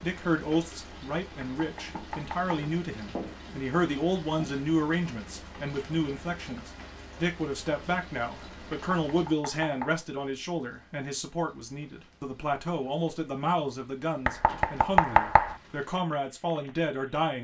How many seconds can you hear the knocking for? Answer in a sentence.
You can hear the knocking for 4 seconds altogether.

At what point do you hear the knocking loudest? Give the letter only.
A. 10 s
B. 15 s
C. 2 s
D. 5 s
B.